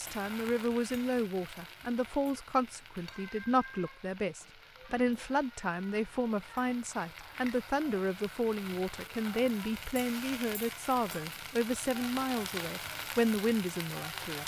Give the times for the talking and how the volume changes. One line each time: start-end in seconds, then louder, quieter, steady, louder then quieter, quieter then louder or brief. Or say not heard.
0.0-14.4 steady.